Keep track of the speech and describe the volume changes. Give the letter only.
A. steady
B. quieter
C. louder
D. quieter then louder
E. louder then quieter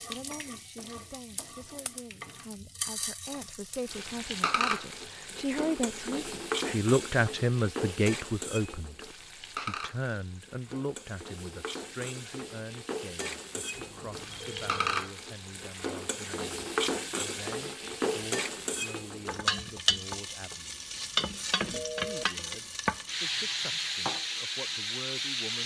E.